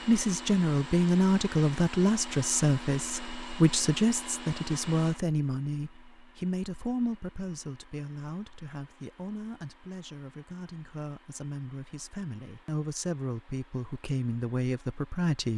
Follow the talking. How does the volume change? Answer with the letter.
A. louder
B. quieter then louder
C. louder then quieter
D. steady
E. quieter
B.